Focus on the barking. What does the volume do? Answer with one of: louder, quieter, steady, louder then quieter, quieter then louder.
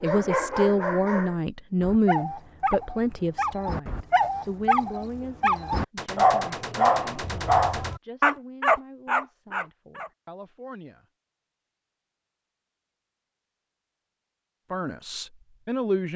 louder.